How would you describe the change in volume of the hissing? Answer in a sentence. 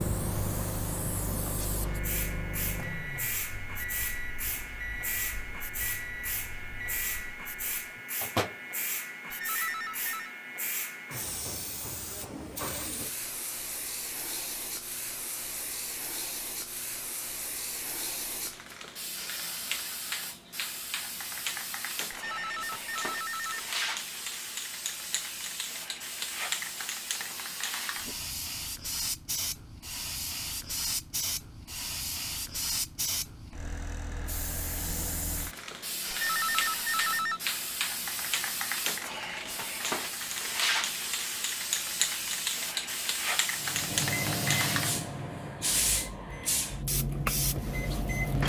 The loudness of the hissing goes up.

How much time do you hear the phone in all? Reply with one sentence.
The phone can be heard for 4 seconds in total.